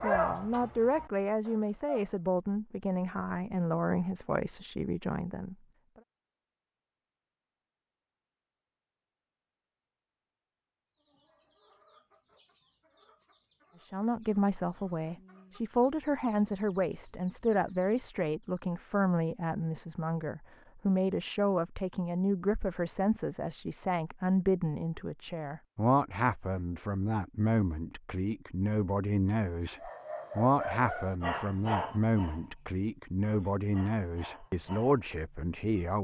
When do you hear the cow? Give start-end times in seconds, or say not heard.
not heard.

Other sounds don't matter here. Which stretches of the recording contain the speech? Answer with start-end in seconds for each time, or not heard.
0.0-5.5, 13.8-36.0.